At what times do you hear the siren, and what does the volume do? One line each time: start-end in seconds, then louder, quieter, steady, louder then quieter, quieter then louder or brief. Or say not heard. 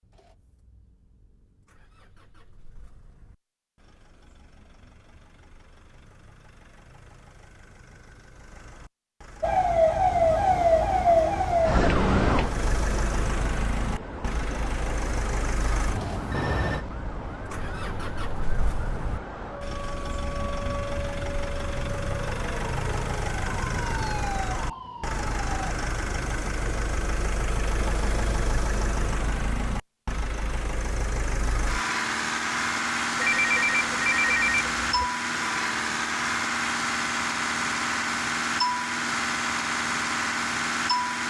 9.4-25.8 quieter.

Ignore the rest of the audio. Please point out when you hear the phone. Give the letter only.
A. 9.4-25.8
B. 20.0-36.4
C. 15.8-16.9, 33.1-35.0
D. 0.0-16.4
C.